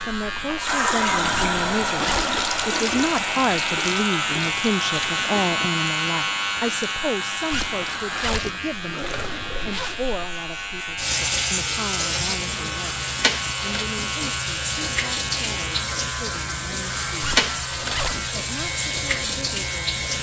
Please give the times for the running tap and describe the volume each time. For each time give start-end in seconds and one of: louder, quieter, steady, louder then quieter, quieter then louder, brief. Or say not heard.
0.1-20.1 quieter then louder.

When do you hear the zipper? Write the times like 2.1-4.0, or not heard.
1.3-2.3, 7.5-10.0, 17.2-18.2.